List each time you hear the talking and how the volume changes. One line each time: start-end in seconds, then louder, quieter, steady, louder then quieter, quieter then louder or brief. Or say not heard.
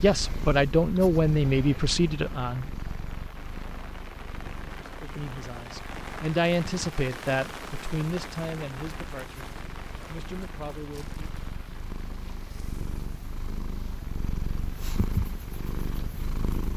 0.0-2.9 brief
4.8-11.2 louder then quieter.